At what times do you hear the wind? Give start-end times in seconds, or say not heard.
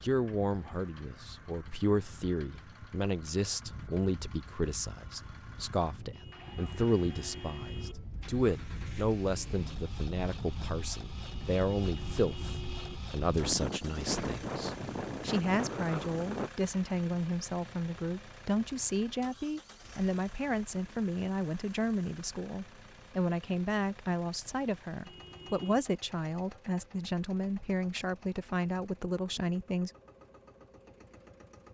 0.2-16.5.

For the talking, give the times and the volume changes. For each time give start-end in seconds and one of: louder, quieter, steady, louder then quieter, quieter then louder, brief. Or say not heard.
0.0-29.9 steady.